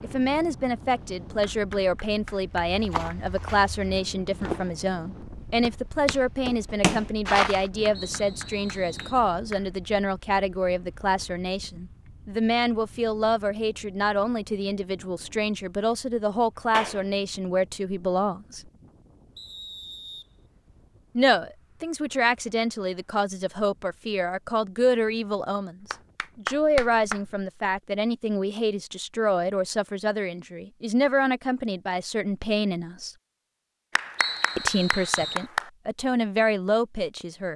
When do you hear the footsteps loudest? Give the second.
7 s.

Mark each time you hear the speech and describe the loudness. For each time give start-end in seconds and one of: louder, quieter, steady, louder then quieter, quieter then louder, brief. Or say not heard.
0.0-18.7 steady
21.1-33.1 steady
34.5-37.5 brief.